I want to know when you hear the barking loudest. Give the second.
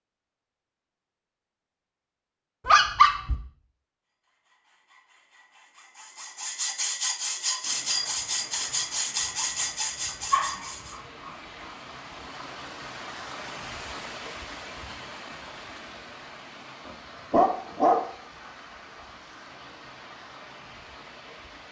3 s.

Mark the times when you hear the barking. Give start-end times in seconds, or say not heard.
2.6-3.4, 10.3-11.3, 16.9-18.0.